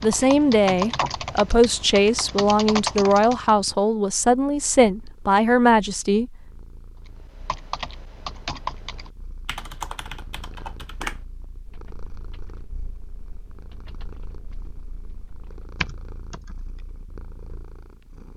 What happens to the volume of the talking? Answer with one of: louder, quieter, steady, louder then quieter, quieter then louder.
steady.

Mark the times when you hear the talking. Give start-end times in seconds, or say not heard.
0.0-6.3.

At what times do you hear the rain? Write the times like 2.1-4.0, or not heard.
not heard.